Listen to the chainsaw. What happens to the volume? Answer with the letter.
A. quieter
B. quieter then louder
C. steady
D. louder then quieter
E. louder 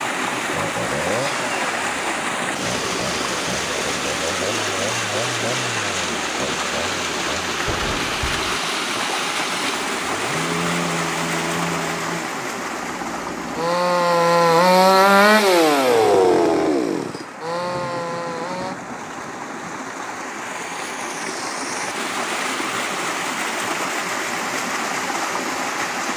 E.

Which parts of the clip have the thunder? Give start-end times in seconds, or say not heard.
7.7-8.6, 17.5-19.9.